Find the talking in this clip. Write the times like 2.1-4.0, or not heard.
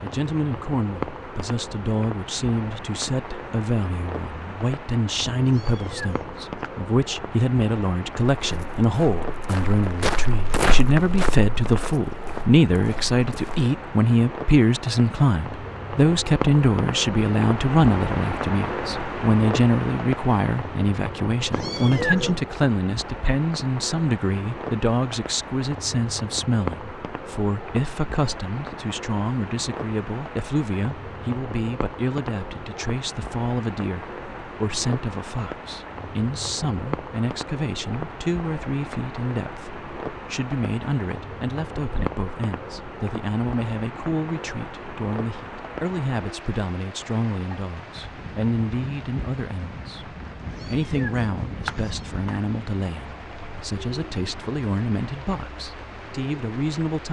0.0-57.0.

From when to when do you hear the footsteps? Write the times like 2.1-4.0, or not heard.
8.4-13.7.